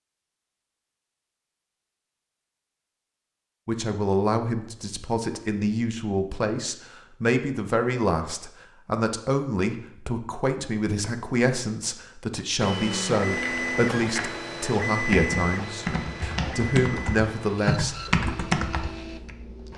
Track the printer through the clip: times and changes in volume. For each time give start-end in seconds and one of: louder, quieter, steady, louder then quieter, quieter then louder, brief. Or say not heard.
12.6-19.7 quieter.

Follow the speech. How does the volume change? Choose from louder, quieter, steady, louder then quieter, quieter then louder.
steady.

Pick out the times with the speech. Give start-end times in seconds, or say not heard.
3.6-18.1.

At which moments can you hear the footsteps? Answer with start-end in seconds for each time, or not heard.
not heard.